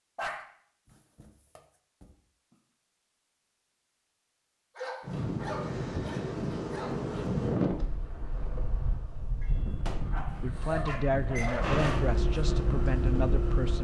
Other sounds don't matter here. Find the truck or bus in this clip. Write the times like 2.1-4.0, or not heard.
11.6-13.7.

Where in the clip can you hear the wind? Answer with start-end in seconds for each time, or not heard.
5.0-13.7.